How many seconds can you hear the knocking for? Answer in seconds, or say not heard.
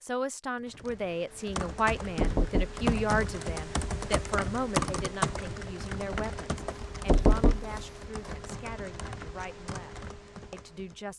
2 s.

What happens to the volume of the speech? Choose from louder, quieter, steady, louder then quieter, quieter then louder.
quieter.